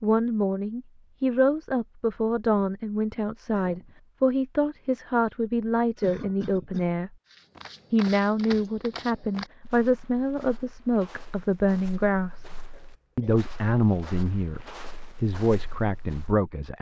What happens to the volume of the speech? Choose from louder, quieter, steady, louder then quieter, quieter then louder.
steady.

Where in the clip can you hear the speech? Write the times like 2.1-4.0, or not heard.
0.0-7.1, 7.9-12.4, 13.2-16.7.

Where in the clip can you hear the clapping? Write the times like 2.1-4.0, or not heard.
not heard.